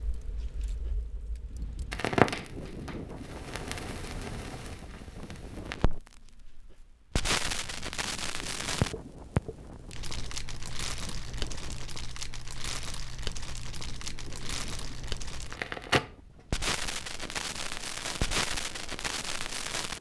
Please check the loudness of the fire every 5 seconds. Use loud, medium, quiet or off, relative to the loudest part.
loud, loud, medium, loud.